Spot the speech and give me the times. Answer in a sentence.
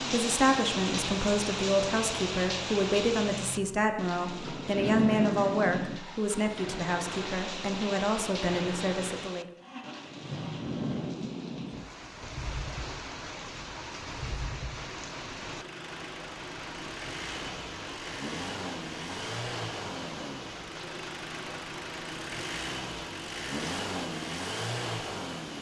You can hear the speech from 0.1 to 9.4 s.